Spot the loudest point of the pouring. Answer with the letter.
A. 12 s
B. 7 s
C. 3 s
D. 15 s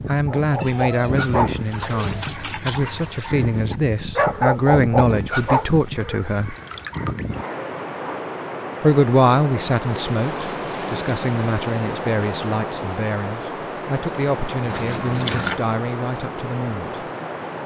D.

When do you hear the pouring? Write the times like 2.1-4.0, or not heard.
0.6-3.2, 6.4-7.3, 14.7-15.7.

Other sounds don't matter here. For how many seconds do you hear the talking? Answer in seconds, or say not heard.
15 s.